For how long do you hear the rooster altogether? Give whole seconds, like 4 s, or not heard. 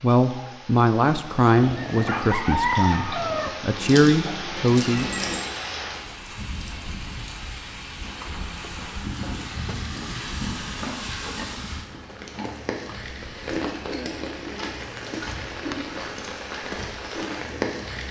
2 s.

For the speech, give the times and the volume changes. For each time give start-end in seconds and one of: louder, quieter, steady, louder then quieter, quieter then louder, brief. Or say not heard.
0.0-5.1 quieter then louder.